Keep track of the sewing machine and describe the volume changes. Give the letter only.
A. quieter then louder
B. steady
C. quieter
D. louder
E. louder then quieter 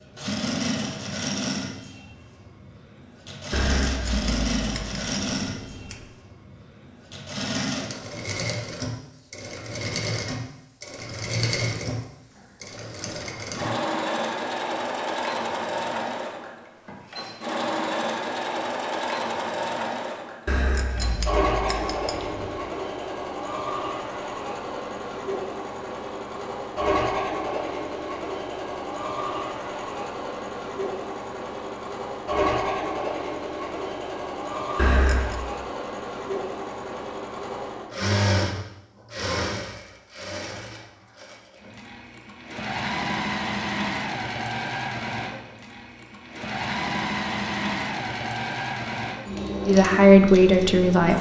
B.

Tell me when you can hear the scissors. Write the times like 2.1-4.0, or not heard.
3.5-6.0, 20.4-22.6, 34.8-35.4.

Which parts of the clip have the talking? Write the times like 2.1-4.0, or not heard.
49.6-51.1.